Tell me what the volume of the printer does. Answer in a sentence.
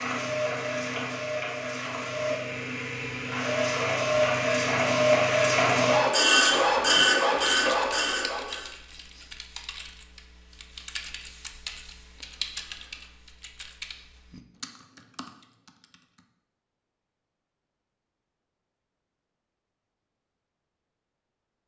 The volume of the printer goes up.